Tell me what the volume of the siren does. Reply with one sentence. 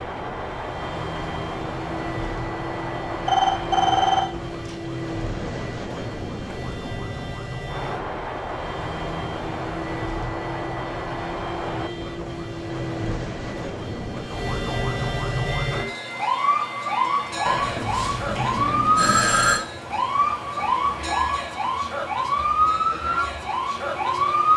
The loudness of the siren goes up.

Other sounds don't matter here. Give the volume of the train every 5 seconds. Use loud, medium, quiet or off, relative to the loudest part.
loud, loud, loud, medium, medium.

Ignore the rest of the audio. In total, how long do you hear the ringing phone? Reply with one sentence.
The ringing phone can be heard for 4 seconds in total.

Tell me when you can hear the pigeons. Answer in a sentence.
You can't hear the pigeons here.